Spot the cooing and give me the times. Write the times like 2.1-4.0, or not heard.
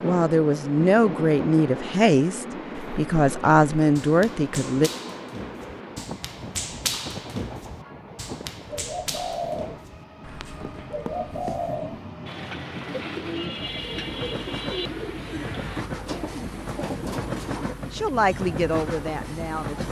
8.7-17.8.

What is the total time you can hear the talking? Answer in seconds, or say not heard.
7 s.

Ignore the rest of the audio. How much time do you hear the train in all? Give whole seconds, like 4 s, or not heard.
20 s.